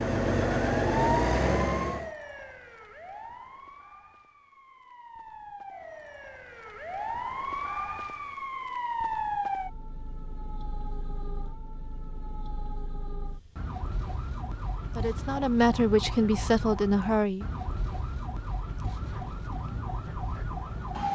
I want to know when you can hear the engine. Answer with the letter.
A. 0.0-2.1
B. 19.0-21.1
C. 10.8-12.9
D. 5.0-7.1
A.